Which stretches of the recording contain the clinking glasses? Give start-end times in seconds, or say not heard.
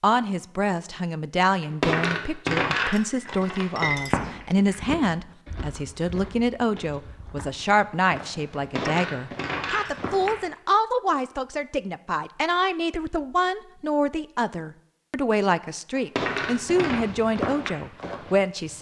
1.6-4.2, 8.6-10.1, 15.9-17.1.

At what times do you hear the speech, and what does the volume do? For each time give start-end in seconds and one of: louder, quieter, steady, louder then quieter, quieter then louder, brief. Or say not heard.
0.0-18.7 steady.